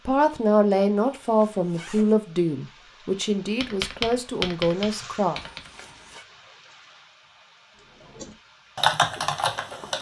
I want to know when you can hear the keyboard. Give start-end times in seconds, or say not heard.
3.6-5.7, 8.2-9.9.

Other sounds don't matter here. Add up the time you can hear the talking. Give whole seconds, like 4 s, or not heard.
5 s.